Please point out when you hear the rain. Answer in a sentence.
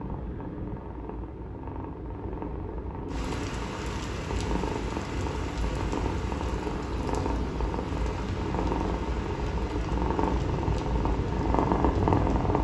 You can hear the rain from 3.0 to 12.5 s.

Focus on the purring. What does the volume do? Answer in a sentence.
The volume of the purring goes up.